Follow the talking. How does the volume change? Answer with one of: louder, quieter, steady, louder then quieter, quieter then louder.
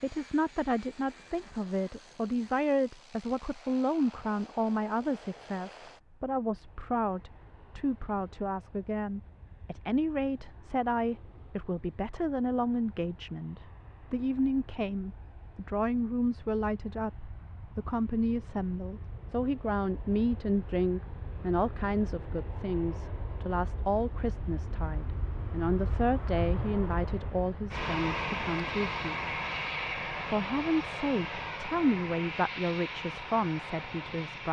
steady.